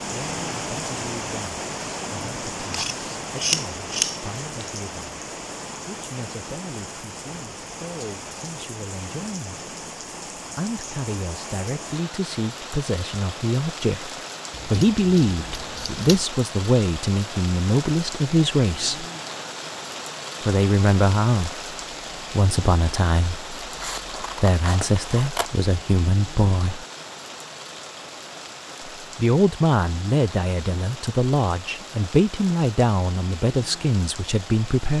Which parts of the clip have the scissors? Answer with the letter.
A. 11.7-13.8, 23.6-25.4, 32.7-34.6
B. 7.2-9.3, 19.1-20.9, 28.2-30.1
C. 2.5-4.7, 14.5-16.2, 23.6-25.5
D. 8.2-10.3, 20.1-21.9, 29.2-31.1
C.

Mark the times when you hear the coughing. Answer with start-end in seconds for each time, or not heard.
not heard.